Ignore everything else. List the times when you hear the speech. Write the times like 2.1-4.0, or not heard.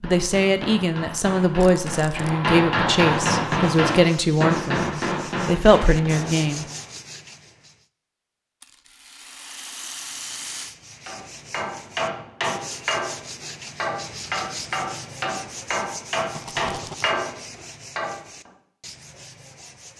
0.0-6.7.